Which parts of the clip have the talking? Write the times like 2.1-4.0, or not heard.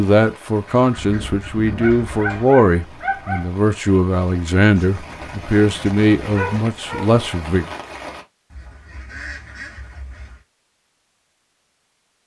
0.0-7.7.